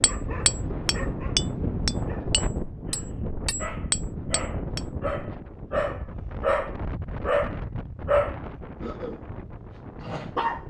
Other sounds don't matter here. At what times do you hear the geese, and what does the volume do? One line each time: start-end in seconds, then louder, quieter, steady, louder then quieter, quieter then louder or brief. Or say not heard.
not heard.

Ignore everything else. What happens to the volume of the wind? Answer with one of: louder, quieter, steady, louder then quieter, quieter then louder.
quieter.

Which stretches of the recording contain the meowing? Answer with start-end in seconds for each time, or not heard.
not heard.